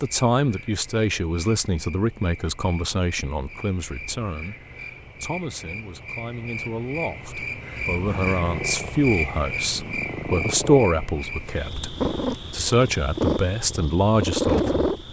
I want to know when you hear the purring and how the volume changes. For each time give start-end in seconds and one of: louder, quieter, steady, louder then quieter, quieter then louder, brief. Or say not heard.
7.9-15.0 louder.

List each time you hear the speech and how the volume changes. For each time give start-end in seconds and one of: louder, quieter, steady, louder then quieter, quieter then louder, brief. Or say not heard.
0.0-15.0 quieter then louder.